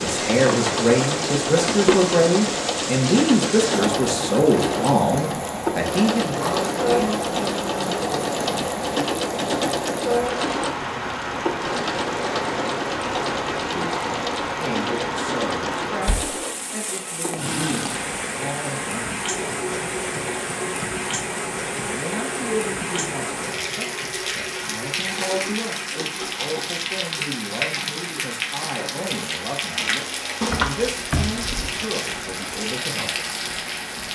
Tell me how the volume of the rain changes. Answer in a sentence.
The loudness of the rain stays about the same.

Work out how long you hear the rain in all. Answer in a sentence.
You can hear the rain for 34 seconds altogether.